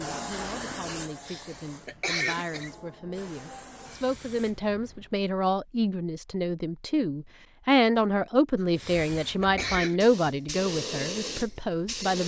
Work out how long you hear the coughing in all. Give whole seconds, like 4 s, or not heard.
3 s.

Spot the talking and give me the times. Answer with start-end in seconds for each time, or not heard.
0.0-12.2.